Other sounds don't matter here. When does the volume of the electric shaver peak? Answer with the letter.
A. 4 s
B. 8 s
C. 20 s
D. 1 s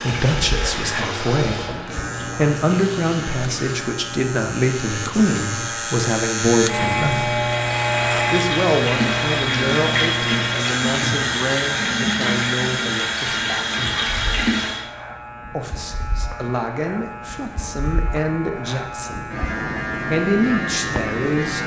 B.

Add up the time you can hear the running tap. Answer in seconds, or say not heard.
15 s.